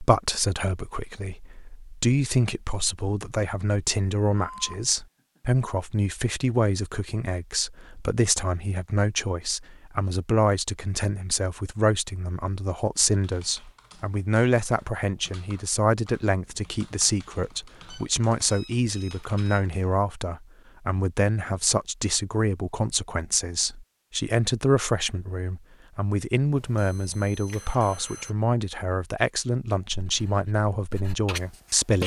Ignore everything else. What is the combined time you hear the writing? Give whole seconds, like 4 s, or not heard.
2 s.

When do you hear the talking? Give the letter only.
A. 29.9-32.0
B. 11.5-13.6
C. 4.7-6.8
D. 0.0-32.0
D.